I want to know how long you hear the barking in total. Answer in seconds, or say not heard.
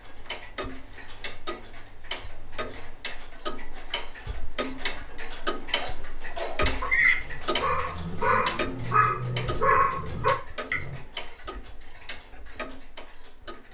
5 s.